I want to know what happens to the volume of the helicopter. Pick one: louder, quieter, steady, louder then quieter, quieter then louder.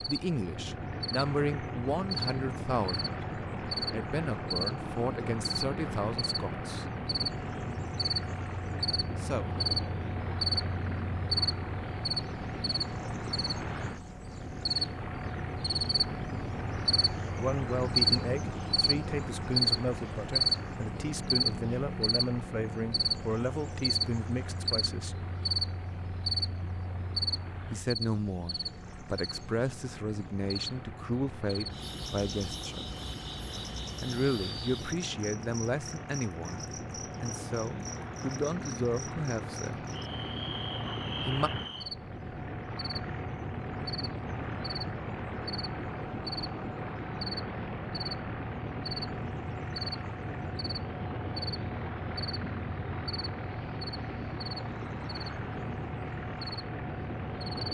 quieter then louder.